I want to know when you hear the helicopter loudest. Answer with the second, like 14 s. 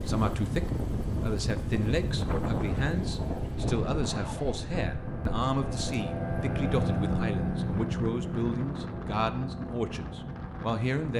7 s.